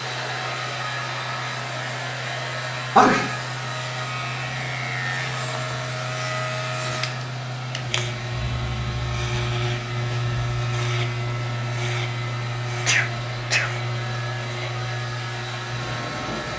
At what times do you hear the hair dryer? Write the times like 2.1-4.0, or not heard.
0.0-16.5.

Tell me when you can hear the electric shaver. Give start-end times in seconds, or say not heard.
0.0-16.5.